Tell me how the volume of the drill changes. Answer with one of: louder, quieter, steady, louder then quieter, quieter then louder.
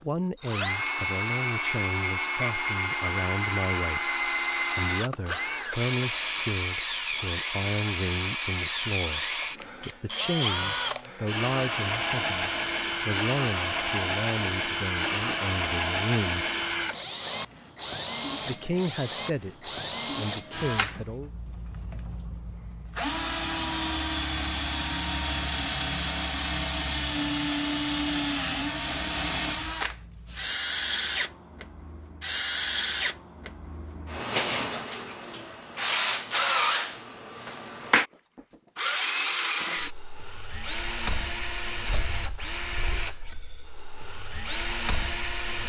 steady.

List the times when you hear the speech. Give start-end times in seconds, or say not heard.
0.0-16.4, 18.4-21.3.